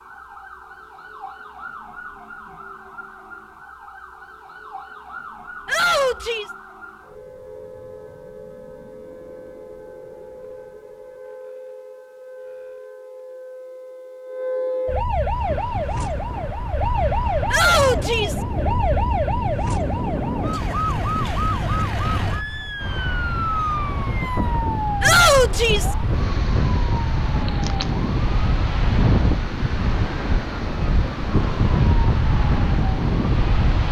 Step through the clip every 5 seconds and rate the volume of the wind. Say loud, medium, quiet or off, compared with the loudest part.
off, off, off, medium, medium, loud, loud.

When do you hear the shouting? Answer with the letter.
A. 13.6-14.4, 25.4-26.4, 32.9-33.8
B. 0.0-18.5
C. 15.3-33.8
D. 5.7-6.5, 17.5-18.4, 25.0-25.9
D.